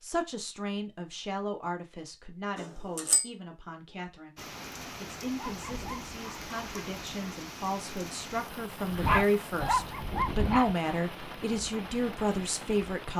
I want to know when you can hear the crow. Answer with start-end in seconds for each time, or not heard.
not heard.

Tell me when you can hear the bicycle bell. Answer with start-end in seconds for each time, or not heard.
2.5-3.2.